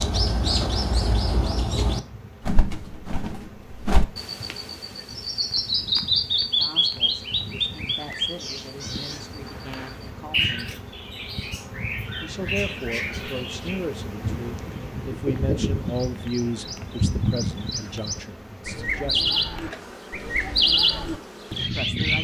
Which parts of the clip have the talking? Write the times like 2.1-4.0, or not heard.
6.4-10.9, 12.2-19.5, 21.6-22.1.